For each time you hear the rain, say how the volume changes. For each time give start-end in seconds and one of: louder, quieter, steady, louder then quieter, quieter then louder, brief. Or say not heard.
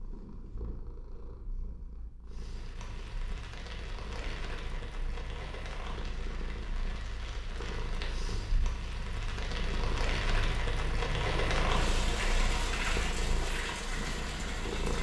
2.2-14.9 louder.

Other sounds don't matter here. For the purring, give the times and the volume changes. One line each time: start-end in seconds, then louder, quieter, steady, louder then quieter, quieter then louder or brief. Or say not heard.
0.0-14.9 louder.